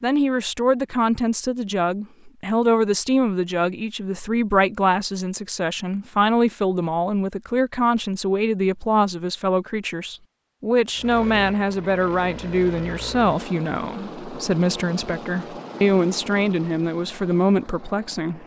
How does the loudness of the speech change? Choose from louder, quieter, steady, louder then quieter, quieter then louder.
steady.